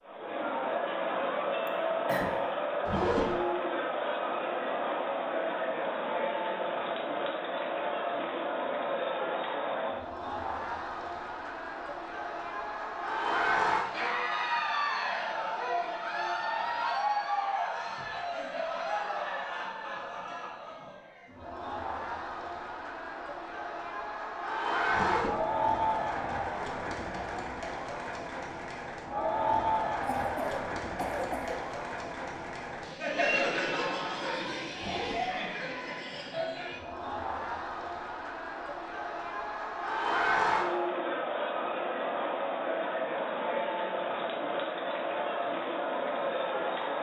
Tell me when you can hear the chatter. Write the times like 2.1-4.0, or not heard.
0.1-46.9.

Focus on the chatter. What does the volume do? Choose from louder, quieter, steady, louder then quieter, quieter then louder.
steady.